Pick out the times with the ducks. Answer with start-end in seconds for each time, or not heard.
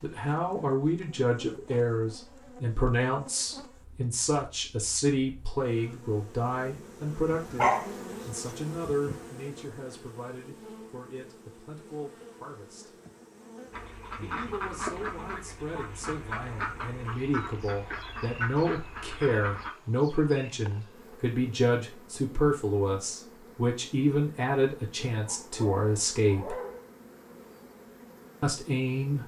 13.7-19.8.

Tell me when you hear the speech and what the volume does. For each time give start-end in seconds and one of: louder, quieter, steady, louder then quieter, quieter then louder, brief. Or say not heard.
0.0-12.9 quieter
14.2-26.6 louder
28.4-29.2 brief.